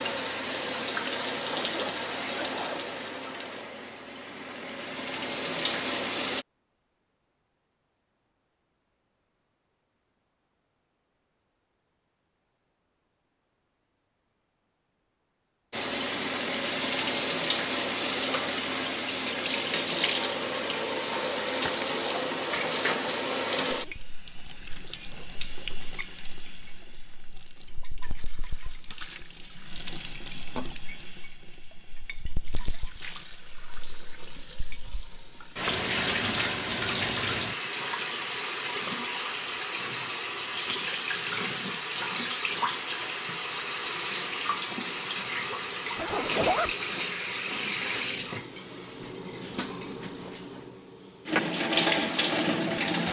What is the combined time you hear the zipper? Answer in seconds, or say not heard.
2 s.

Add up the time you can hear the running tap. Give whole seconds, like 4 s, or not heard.
44 s.